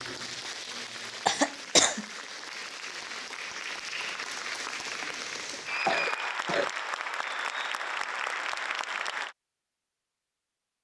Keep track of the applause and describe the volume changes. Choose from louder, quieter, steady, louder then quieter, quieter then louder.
louder.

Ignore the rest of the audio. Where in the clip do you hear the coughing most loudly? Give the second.
2 s.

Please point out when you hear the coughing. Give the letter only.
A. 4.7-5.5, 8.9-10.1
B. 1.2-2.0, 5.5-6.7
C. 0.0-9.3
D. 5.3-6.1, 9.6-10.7
B.